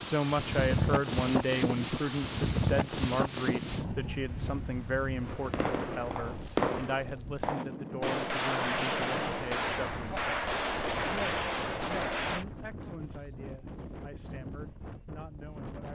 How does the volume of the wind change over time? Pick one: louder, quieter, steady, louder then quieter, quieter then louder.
quieter.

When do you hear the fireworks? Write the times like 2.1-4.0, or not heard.
5.2-12.4.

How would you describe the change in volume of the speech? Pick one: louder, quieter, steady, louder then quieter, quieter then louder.
quieter.